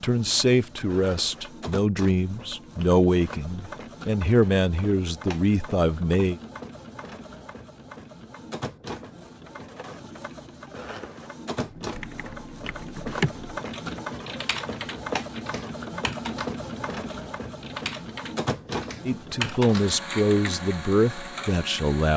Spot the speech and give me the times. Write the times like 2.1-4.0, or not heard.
0.0-6.4, 19.1-22.1.